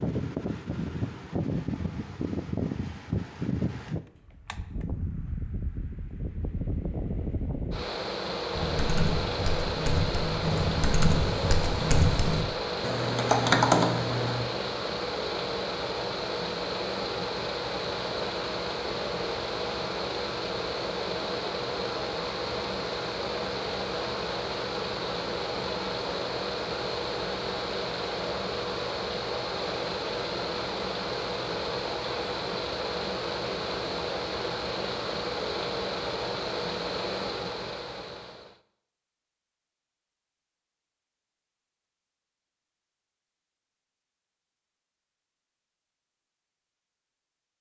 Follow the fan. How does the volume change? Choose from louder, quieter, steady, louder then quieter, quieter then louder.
steady.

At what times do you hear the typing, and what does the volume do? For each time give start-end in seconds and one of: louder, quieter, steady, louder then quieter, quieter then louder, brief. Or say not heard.
8.6-14.4 louder.